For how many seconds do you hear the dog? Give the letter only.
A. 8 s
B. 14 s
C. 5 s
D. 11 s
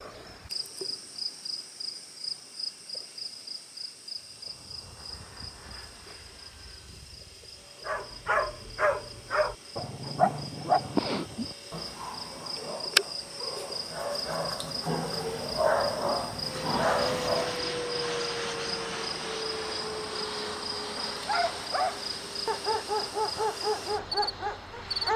B.